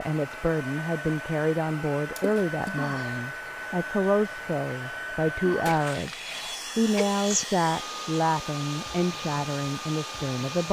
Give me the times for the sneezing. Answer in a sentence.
The sneezing can be heard from 2.8 to 3.2 s and from 5.5 to 7.5 s.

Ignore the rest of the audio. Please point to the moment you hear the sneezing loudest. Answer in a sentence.
The loudest moment of the sneezing is at 7 seconds.